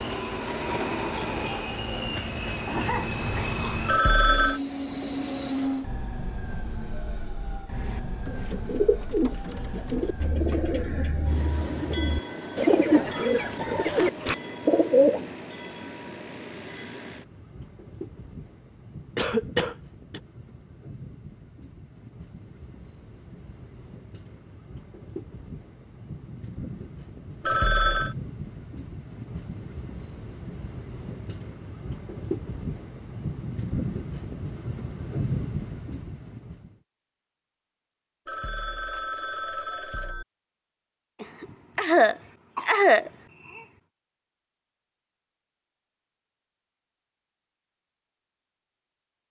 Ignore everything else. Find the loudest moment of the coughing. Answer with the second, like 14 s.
43 s.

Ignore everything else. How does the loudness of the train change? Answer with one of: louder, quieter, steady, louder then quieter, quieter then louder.
quieter then louder.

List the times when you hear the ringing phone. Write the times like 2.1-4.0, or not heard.
3.9-4.6, 27.4-28.1, 38.2-40.2.